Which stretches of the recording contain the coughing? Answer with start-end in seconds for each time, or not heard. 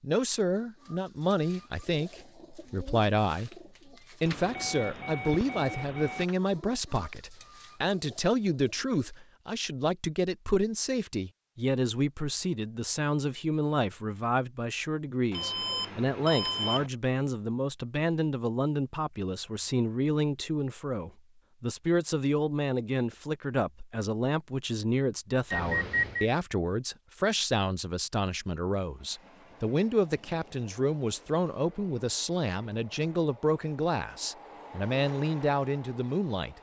not heard.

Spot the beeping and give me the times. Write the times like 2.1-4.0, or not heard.
4.2-6.2, 15.3-16.9, 25.5-26.3.